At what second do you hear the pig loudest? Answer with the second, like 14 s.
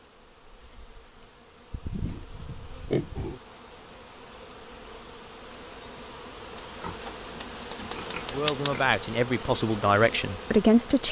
3 s.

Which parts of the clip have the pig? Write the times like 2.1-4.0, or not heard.
1.7-3.4, 6.8-8.8.